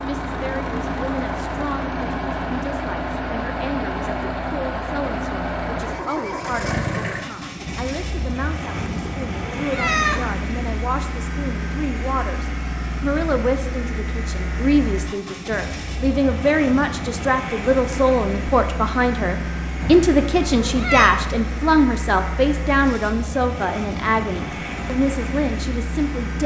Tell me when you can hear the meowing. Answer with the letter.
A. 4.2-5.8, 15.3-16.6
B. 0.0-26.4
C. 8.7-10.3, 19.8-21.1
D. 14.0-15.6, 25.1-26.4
C.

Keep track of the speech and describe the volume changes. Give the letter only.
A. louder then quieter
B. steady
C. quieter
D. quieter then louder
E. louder
E.